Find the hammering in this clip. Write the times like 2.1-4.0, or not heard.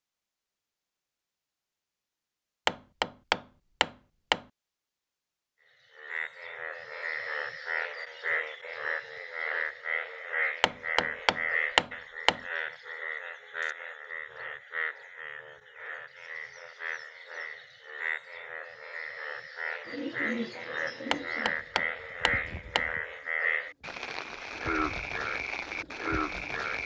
2.6-4.5, 10.6-12.4, 21.1-22.9.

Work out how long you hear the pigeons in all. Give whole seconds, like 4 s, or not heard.
7 s.